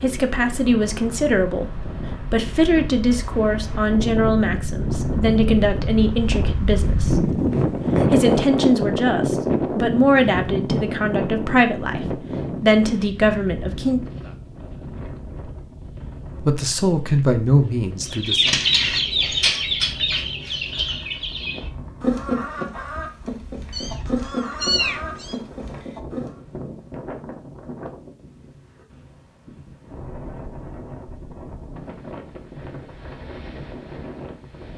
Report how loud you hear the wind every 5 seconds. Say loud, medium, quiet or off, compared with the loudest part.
medium, loud, medium, quiet, quiet, quiet, quiet.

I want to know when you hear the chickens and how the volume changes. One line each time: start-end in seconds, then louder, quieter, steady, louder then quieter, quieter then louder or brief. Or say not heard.
18.1-26.3 quieter.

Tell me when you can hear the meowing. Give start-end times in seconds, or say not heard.
23.7-25.4.